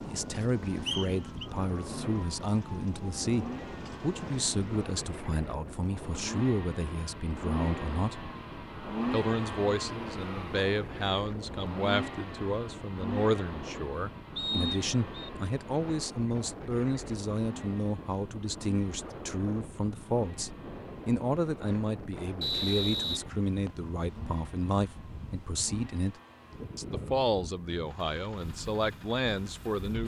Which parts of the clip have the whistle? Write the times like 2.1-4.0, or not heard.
0.8-1.4, 14.3-15.3, 22.4-23.8.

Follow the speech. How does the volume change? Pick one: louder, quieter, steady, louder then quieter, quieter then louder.
steady.